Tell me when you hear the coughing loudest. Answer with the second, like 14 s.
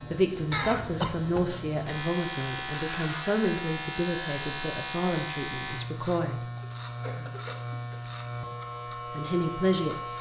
1 s.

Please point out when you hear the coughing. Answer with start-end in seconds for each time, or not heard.
0.5-1.6, 6.6-8.1.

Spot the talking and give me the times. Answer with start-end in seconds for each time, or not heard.
0.1-6.4, 9.1-9.9.